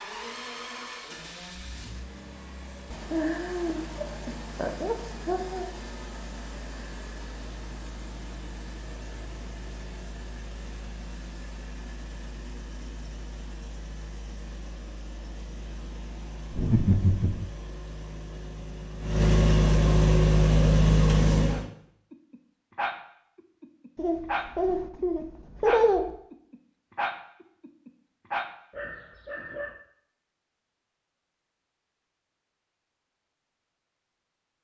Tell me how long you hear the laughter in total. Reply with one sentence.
The laughter can be heard for 6 seconds in total.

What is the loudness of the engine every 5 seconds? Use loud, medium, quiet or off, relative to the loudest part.
quiet, quiet, quiet, medium, loud, off, off.